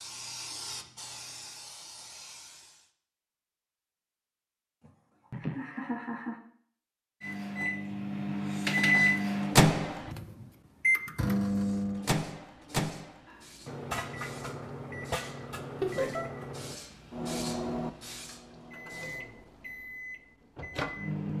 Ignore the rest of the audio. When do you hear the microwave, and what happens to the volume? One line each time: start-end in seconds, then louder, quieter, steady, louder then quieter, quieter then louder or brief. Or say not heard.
7.2-21.3 quieter.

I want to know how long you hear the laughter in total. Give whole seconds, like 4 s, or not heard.
2 s.